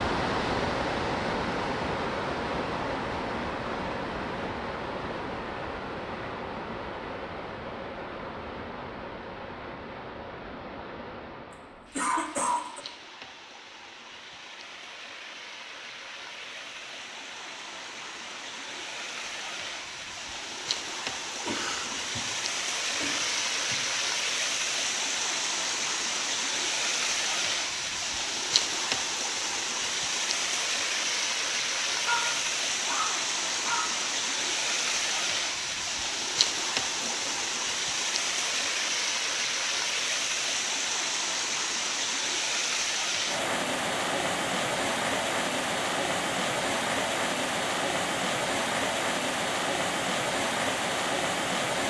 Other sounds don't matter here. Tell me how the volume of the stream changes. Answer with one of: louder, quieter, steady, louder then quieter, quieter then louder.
quieter then louder.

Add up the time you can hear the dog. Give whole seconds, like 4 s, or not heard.
2 s.